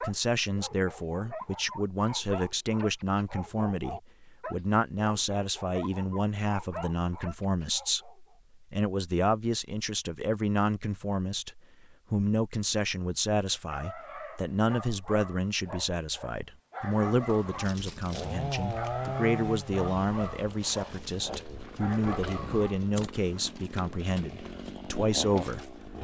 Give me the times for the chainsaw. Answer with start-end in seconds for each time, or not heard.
16.8-25.9.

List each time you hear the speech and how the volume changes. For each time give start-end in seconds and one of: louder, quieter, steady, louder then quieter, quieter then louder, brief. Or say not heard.
0.0-25.8 steady.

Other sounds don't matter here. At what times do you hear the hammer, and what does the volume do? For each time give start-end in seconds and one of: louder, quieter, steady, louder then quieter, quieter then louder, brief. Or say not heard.
not heard.